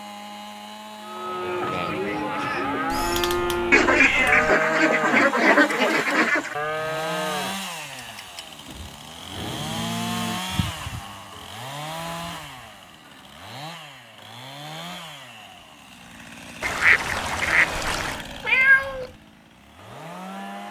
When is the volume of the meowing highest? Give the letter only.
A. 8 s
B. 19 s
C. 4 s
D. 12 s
B.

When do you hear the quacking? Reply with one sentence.
You can hear the quacking from 3.7 to 6.5 s and from 16.6 to 18.2 s.